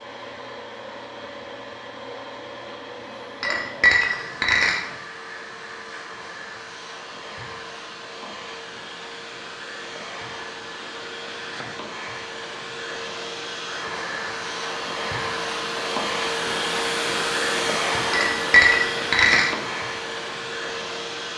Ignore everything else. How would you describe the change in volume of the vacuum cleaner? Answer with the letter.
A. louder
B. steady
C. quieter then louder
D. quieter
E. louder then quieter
A.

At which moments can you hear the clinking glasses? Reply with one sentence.
The clinking glasses can be heard from 3.4 to 4.8 s and from 18.1 to 19.6 s.